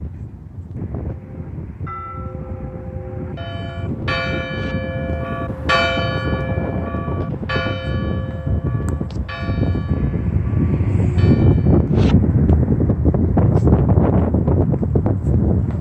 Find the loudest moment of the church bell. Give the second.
6 s.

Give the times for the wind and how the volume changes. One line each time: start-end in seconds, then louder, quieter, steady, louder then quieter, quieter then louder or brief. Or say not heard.
0.0-15.7 louder.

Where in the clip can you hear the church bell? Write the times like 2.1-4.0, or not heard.
1.1-11.9.